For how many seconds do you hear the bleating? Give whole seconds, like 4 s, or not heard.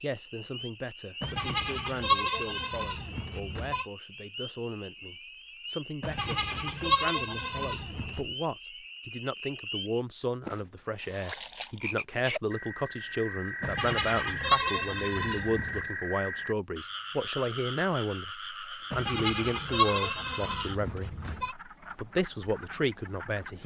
10 s.